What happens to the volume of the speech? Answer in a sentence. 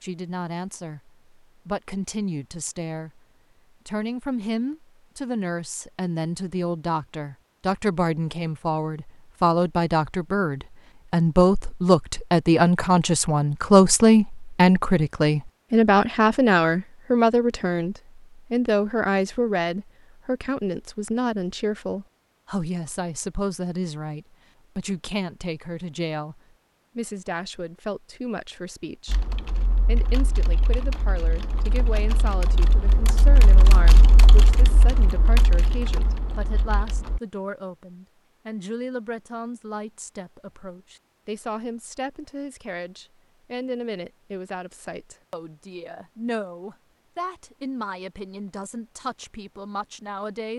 The loudness of the speech goes up, then down.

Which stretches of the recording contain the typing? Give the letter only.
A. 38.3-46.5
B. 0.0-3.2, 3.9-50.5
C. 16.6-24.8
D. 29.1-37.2
D.